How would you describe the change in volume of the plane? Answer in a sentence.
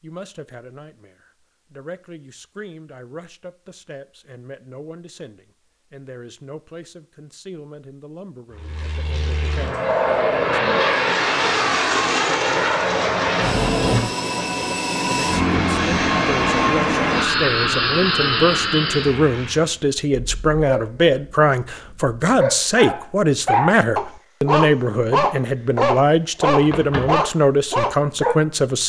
The loudness of the plane stays about the same.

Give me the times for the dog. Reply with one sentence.
You can hear the dog from 20.1 to 28.4 s.